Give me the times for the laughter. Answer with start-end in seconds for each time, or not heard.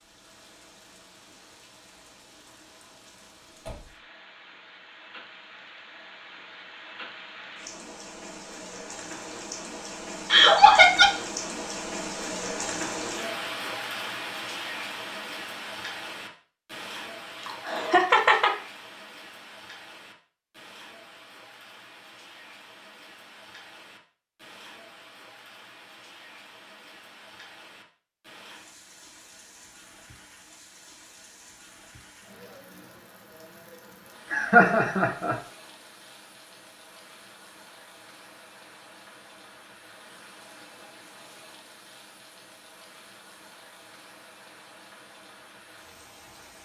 10.3-11.1, 17.4-18.5, 34.3-35.4.